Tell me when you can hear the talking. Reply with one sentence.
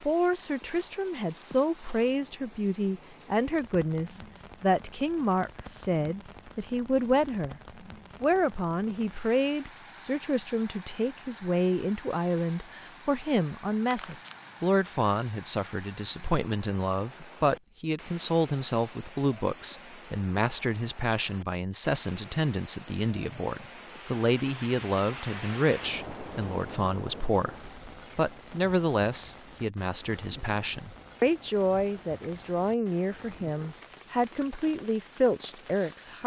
You can hear the talking from 0.0 to 7.6 s and from 8.2 to 36.2 s.